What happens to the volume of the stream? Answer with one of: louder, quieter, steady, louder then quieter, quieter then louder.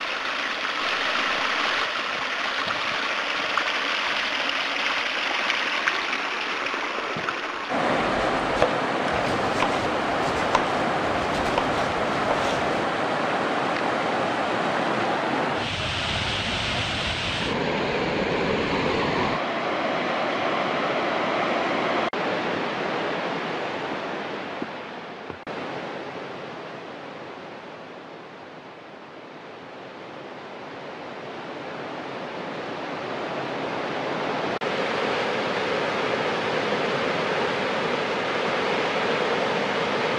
quieter then louder.